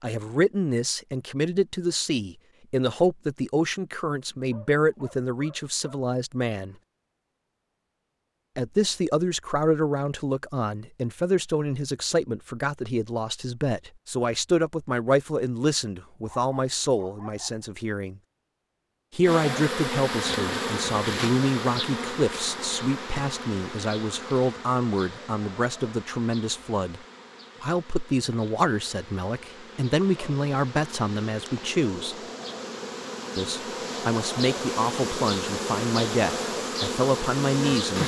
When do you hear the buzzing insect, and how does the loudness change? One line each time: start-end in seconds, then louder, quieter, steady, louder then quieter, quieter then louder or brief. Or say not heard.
19.2-38.0 quieter then louder.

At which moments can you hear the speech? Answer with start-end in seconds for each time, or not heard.
0.0-6.8, 8.6-18.2, 19.1-27.0, 27.6-32.1, 33.4-38.0.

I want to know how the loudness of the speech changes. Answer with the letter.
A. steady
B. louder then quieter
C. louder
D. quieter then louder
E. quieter
A.